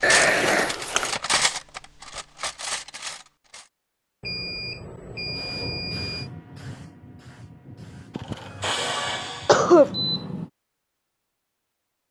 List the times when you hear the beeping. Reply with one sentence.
The beeping can be heard from 0.0 to 1.1 s, from 4.2 to 6.3 s and from 9.5 to 10.4 s.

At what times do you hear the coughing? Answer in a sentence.
You can hear the coughing from 8.2 to 9.9 s.